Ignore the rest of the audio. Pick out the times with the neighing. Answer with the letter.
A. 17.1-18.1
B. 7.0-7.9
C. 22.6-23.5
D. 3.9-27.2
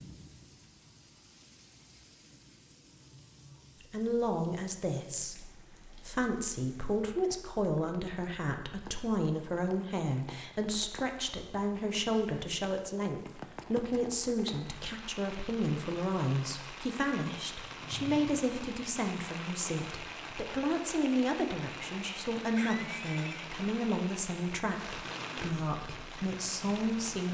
C.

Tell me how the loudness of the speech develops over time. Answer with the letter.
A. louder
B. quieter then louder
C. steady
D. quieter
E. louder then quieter
C.